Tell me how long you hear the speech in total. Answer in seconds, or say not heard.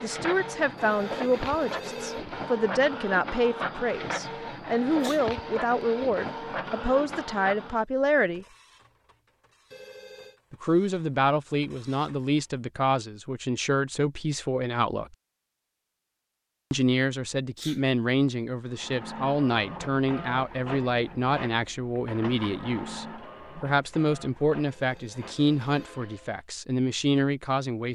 24 s.